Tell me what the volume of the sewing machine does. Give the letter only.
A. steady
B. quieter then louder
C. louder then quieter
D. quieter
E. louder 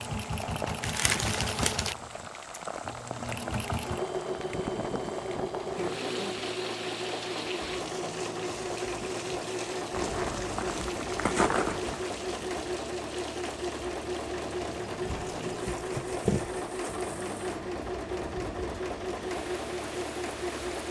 A.